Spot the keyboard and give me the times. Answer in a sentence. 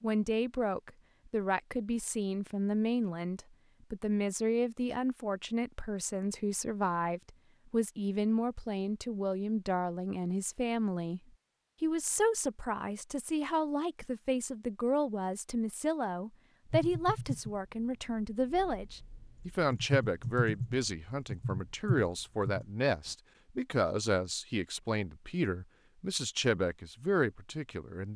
The keyboard can be heard from 16.7 to 23.1 s.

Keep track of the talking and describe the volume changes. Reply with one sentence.
The loudness of the talking stays about the same.